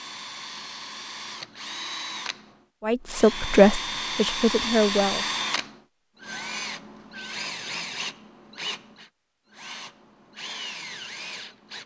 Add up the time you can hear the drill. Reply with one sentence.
You can hear the drill for 12 seconds altogether.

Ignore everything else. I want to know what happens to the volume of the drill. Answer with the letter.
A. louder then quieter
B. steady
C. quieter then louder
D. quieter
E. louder
A.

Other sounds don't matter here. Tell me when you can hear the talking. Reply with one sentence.
You can hear the talking from 2.9 to 5.2 s.